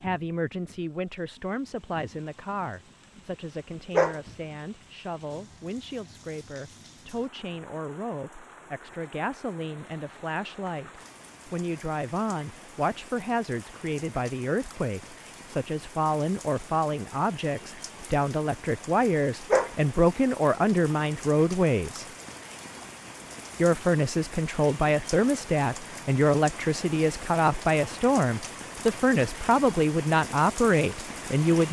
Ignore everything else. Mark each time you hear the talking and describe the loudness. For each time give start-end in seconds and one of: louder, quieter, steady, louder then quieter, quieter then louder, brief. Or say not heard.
0.0-22.1 louder
23.6-31.6 steady.